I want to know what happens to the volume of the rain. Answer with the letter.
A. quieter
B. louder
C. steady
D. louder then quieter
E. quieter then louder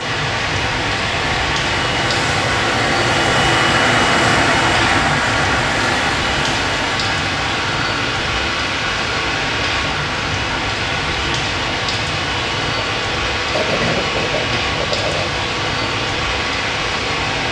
C.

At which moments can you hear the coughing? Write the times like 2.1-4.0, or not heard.
13.5-15.4.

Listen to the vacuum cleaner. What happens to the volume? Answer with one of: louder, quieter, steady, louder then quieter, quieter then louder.
quieter.